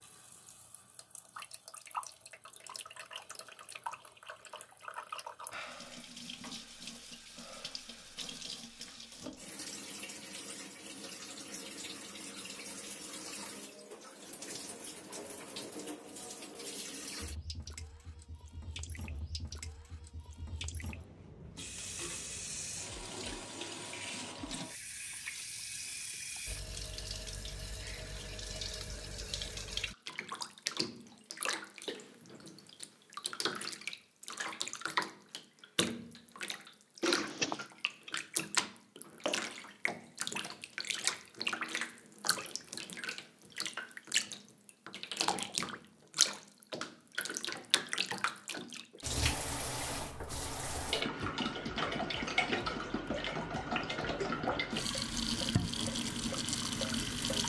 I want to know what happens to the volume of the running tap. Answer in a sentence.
The volume of the running tap goes up.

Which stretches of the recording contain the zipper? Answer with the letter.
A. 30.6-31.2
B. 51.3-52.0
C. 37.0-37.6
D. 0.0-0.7
C.